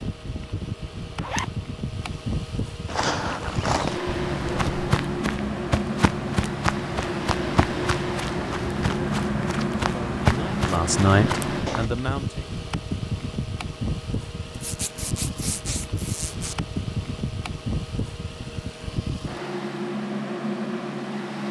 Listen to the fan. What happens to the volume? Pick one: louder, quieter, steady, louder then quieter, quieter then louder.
steady.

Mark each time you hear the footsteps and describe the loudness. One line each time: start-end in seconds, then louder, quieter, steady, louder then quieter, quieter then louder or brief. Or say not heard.
2.9-11.9 steady.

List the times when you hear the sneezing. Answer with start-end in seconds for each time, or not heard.
not heard.